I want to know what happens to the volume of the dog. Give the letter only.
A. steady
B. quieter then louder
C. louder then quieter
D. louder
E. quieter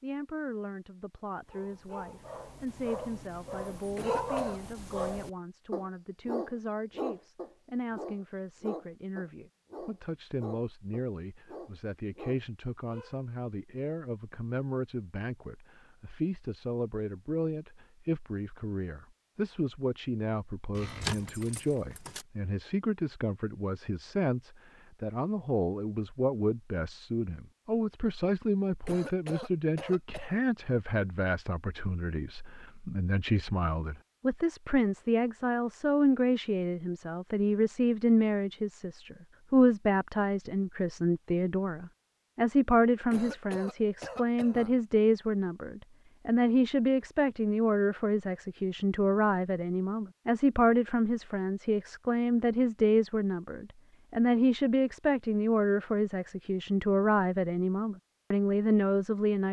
C.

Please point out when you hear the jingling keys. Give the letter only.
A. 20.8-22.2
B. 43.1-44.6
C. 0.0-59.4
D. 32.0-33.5
A.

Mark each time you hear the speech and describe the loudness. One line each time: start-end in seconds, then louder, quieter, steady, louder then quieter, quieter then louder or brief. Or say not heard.
0.0-59.4 louder.